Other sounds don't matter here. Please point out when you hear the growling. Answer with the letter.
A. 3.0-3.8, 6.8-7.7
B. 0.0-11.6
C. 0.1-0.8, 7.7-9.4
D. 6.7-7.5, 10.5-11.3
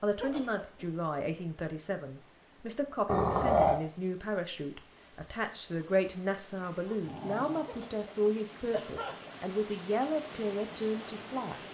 A.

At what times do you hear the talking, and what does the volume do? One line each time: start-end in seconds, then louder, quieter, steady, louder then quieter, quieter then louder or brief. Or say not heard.
0.0-11.6 steady.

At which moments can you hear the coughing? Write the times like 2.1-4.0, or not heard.
0.1-0.8, 7.7-9.4.